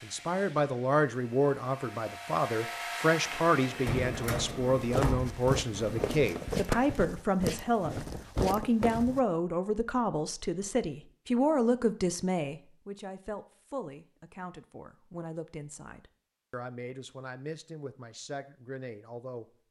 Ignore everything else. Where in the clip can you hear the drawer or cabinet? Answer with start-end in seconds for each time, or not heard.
3.8-6.3.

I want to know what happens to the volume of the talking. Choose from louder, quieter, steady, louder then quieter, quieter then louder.
quieter.